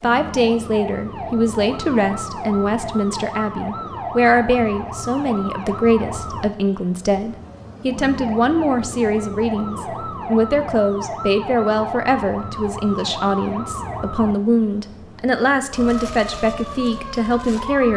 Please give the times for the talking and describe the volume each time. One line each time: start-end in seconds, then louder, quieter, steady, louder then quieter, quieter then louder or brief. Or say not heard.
0.0-17.9 steady.